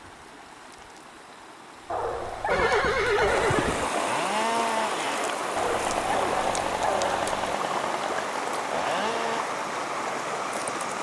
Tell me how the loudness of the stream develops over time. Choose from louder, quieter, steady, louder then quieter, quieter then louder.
louder.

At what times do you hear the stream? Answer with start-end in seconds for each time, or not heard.
0.0-10.9.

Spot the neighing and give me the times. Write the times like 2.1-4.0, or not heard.
2.5-3.9.